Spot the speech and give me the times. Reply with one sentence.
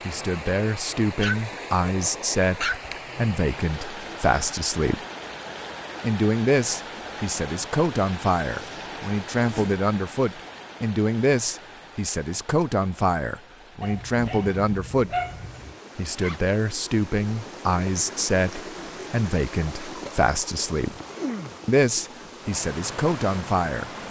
The speech can be heard from 0.1 to 5.0 s, from 6.0 to 15.2 s, from 15.9 to 20.9 s and from 21.6 to 23.9 s.